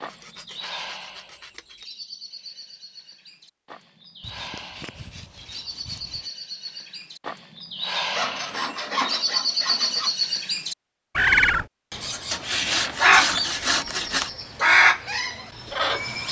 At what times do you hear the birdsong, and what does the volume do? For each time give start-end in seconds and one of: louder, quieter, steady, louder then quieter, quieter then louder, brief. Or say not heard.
0.0-16.2 louder.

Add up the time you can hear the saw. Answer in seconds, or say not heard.
8 s.